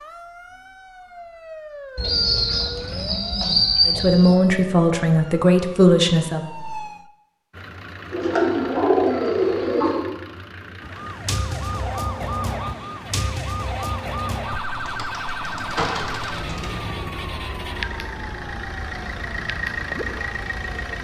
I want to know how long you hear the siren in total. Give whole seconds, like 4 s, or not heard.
17 s.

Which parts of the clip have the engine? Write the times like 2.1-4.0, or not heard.
7.5-21.0.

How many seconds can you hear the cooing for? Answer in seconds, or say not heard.
6 s.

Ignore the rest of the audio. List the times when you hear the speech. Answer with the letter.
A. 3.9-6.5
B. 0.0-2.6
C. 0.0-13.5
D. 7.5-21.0
A.